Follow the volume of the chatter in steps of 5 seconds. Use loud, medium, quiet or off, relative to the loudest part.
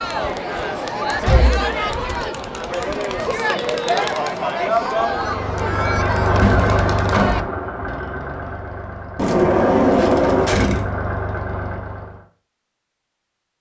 loud, loud, off.